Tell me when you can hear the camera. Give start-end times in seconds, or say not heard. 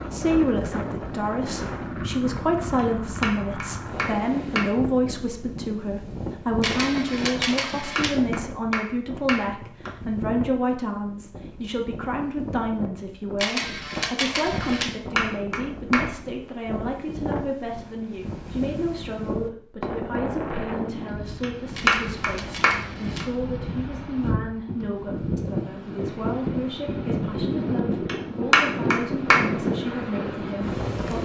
6.6-8.2, 13.3-14.9, 21.8-23.2.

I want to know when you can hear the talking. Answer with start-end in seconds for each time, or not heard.
0.1-31.2.